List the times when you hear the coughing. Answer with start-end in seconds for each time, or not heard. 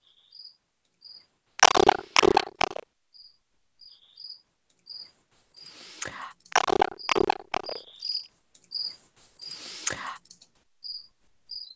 1.6-2.8, 6.5-8.2.